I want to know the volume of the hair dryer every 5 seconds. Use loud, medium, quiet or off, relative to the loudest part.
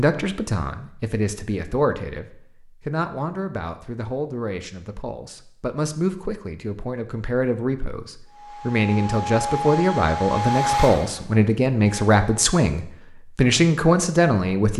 off, loud, loud.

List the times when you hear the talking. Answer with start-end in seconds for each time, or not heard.
0.0-14.7.